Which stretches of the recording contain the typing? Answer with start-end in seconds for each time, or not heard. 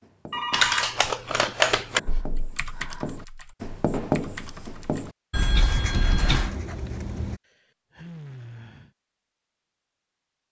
0.5-6.3.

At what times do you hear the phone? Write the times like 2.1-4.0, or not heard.
0.3-0.9, 5.3-6.5.